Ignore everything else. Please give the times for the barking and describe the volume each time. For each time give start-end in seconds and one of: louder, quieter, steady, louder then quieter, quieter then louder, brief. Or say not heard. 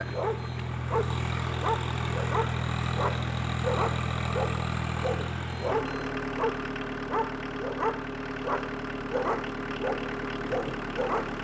0.0-11.3 steady.